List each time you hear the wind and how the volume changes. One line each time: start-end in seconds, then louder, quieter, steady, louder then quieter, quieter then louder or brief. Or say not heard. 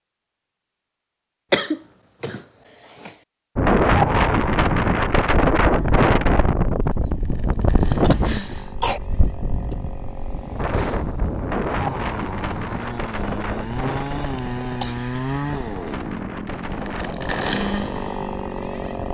3.5-19.1 quieter.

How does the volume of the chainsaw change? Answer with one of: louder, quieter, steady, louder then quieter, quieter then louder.
louder.